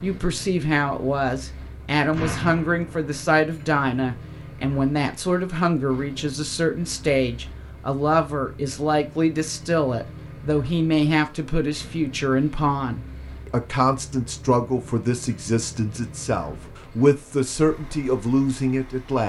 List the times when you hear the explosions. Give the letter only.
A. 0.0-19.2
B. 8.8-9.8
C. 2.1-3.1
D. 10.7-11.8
C.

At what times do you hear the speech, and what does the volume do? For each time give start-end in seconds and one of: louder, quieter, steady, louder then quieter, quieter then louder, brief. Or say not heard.
0.0-19.2 steady.